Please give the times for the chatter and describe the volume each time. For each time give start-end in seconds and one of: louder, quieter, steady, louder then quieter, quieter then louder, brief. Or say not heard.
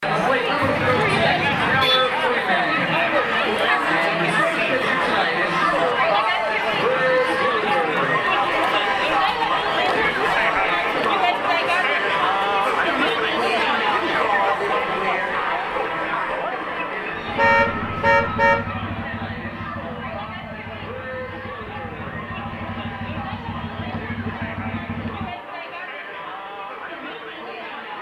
0.0-27.9 quieter.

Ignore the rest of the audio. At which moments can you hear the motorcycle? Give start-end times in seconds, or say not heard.
17.1-25.3.